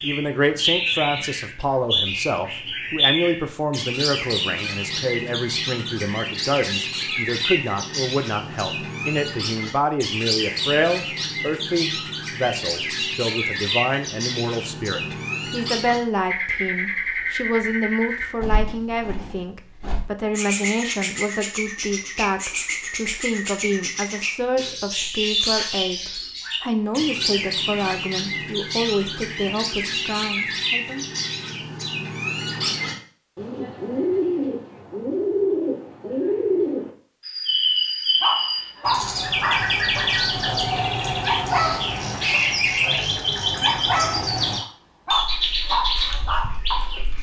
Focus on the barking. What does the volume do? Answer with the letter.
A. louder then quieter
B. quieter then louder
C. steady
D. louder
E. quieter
B.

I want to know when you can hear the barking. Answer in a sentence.
The barking can be heard from 38.2 to 47.0 s.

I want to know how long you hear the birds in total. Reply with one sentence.
You can hear the birds for 47 seconds altogether.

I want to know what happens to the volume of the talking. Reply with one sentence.
The volume of the talking stays about the same.